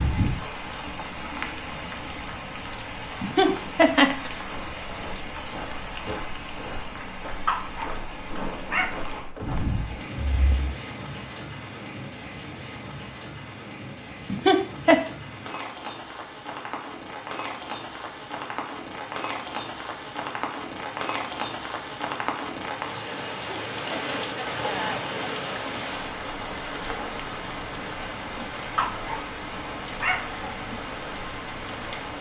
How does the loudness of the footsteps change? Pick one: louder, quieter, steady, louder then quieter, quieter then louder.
steady.